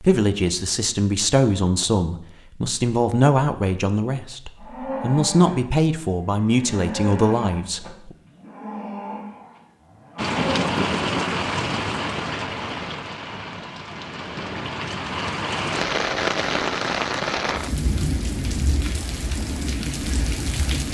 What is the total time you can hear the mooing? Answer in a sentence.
You can hear the mooing for 6 seconds altogether.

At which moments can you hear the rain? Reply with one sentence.
The rain can be heard from 10.2 to 20.8 s.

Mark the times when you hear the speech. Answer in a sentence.
The speech can be heard from 0.0 to 8.1 s.